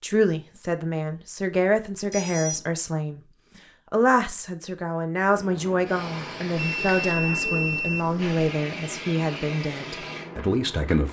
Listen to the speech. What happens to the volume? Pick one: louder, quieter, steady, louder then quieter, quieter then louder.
steady.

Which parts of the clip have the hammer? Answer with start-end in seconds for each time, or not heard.
not heard.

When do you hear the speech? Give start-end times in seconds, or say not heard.
0.0-3.2, 3.9-11.0.